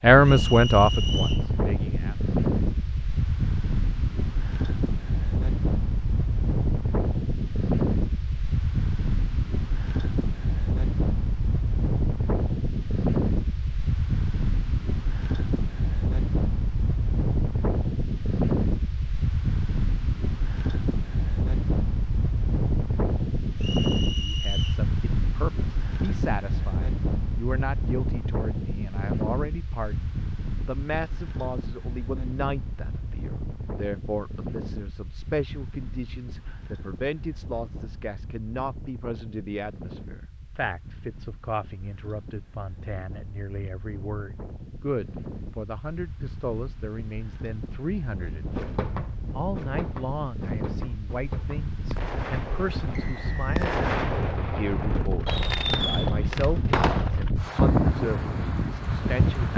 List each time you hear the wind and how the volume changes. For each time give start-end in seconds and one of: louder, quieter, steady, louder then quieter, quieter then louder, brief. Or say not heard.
0.0-59.5 quieter then louder.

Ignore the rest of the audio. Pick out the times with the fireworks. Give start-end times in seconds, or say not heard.
48.5-57.1.